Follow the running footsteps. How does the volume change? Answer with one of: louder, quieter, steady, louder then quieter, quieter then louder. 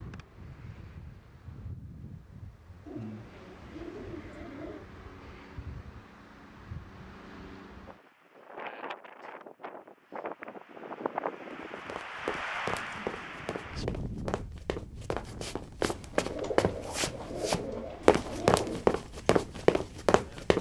louder.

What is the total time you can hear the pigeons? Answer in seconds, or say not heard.
5 s.